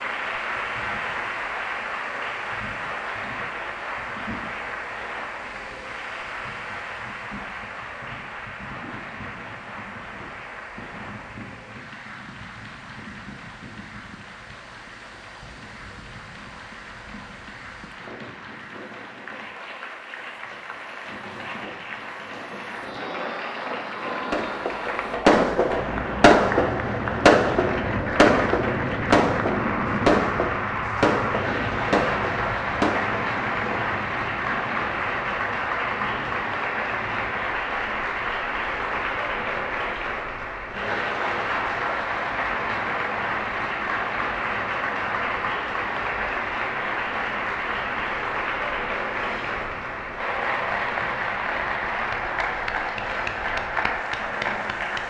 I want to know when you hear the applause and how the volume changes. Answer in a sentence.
The applause can be heard from 0.0 to 55.0 s, getting quieter then louder.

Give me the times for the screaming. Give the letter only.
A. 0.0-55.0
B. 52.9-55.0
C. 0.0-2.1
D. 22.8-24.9
D.